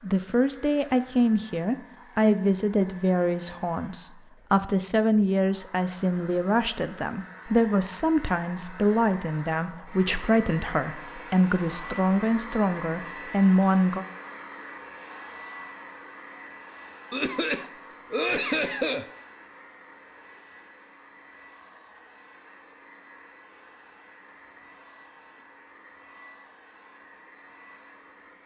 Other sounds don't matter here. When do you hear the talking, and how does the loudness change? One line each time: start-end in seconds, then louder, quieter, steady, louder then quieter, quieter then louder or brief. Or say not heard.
0.0-14.1 steady.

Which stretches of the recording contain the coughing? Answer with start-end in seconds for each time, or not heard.
17.1-19.1.